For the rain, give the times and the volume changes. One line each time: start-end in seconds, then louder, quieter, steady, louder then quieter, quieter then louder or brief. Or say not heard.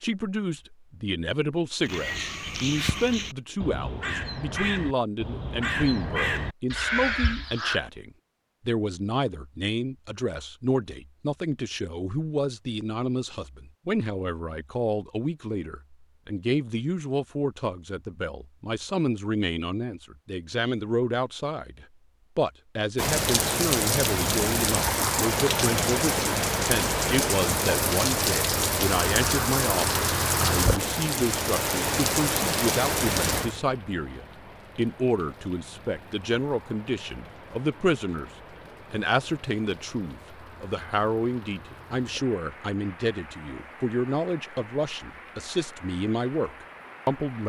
22.9-47.4 quieter.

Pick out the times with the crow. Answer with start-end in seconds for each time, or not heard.
1.9-7.8.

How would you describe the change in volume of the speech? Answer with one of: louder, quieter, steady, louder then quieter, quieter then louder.
steady.